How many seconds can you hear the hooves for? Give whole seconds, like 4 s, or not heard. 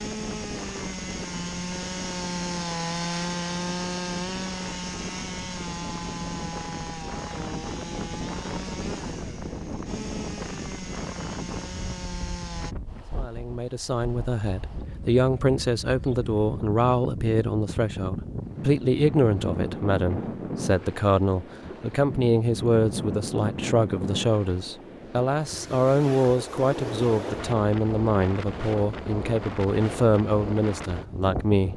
not heard.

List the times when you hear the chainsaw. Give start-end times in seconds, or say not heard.
0.0-12.8.